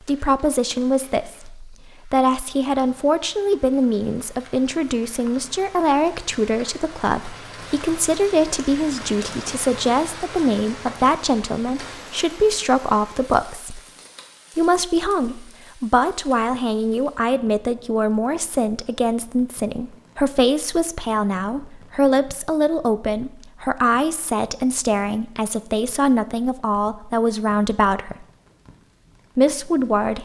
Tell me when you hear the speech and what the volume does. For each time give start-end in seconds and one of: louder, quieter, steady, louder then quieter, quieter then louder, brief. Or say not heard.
0.1-13.8 steady
14.6-28.2 steady
29.4-30.2 brief.